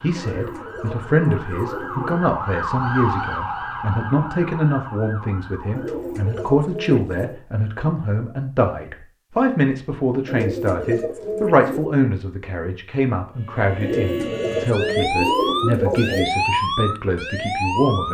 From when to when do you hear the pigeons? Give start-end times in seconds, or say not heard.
0.1-2.2, 5.8-7.4, 10.2-11.9, 13.8-16.3.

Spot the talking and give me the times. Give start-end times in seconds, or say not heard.
0.0-18.0.